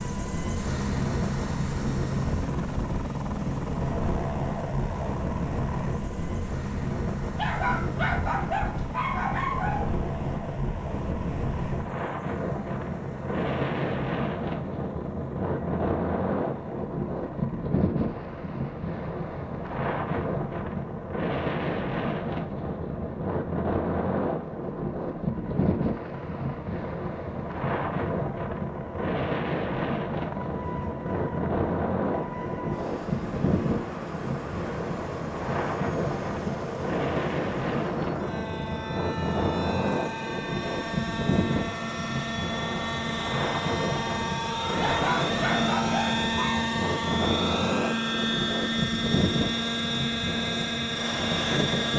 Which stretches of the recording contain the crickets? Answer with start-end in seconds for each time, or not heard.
not heard.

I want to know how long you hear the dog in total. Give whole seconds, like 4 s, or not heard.
4 s.